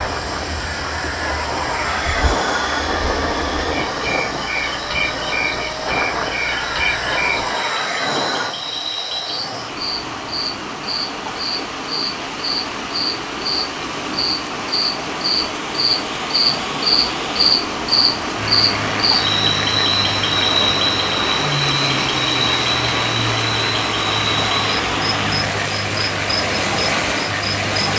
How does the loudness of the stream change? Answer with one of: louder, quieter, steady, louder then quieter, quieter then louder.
louder.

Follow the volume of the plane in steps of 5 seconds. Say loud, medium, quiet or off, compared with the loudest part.
loud, loud, off, loud, loud, loud.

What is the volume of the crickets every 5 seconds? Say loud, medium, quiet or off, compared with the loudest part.
medium, medium, medium, loud, loud, off.